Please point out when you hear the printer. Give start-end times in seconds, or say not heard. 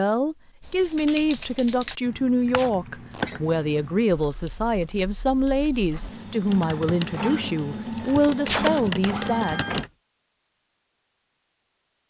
5.9-9.9.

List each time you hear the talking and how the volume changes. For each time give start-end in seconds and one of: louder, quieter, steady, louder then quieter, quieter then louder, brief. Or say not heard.
0.0-9.8 steady.